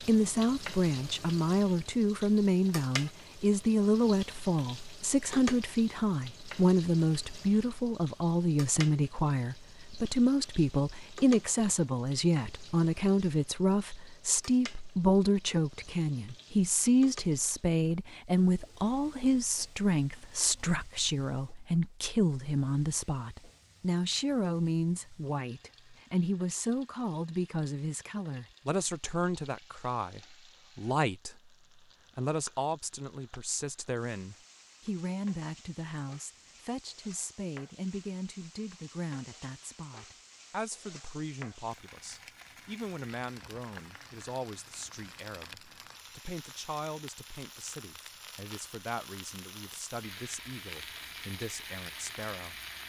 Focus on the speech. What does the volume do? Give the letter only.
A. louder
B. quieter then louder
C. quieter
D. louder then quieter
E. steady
C.